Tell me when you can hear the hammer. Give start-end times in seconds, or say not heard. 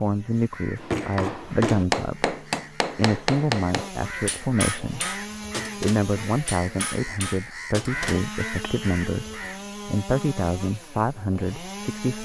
0.8-8.9.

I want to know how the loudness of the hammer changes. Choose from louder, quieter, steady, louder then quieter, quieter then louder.
quieter.